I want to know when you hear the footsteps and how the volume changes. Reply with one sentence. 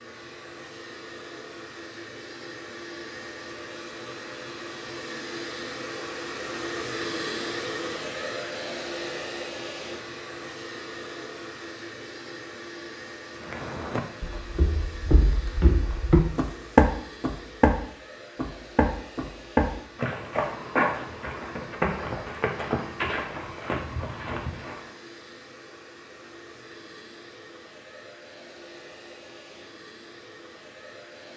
You can hear the footsteps from 13.4 to 24.9 s, getting louder then quieter.